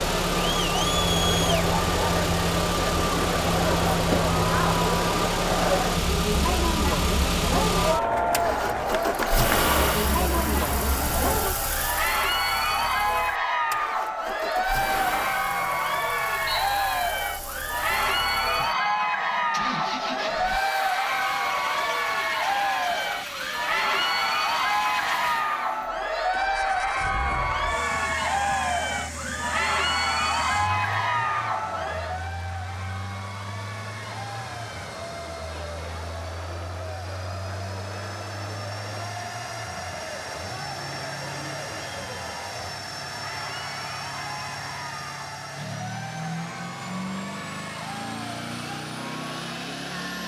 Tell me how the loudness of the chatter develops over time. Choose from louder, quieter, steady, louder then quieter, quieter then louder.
quieter.